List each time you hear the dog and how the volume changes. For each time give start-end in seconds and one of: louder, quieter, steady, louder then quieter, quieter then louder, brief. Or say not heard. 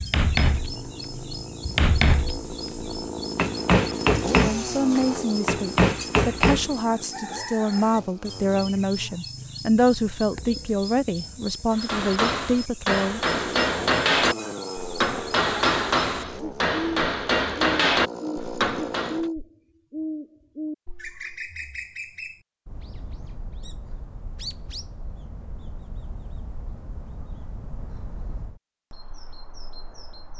not heard.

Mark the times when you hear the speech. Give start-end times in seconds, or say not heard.
4.3-13.3.